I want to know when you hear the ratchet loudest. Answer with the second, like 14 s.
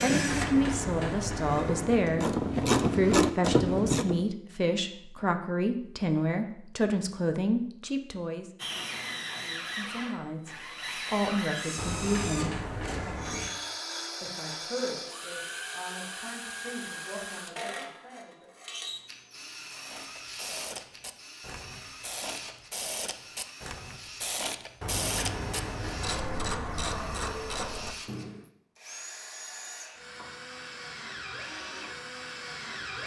3 s.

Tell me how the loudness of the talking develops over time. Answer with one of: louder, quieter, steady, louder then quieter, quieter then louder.
quieter.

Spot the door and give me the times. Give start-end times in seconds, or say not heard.
0.2-2.1, 11.8-13.5, 24.8-27.3.